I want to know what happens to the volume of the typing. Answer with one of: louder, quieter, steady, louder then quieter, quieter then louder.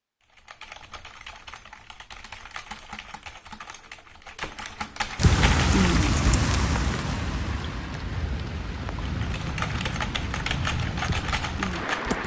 louder.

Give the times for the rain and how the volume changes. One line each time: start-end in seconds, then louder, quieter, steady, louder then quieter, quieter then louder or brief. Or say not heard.
5.2-12.2 quieter.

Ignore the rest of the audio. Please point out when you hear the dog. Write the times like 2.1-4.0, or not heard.
not heard.